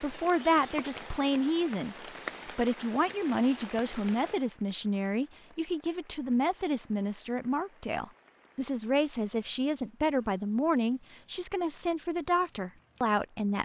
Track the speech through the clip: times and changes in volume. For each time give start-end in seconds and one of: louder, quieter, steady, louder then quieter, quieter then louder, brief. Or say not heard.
0.0-13.6 steady.